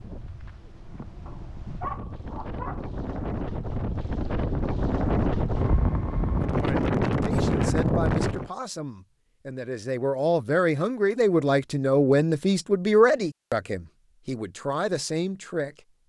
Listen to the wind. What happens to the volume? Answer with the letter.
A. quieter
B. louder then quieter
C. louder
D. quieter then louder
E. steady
C.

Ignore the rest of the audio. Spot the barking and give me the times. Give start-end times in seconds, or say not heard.
1.2-2.9.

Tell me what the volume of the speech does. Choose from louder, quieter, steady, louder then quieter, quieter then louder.
louder then quieter.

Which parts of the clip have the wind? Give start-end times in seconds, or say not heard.
0.0-8.5.